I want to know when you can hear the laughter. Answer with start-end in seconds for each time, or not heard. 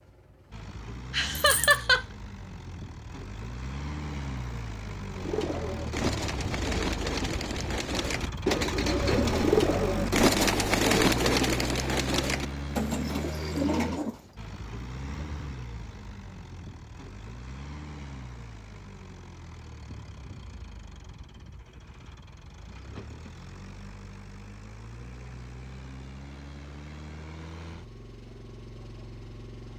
1.1-2.0.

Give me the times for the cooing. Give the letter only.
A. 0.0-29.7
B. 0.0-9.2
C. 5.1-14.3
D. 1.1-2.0
C.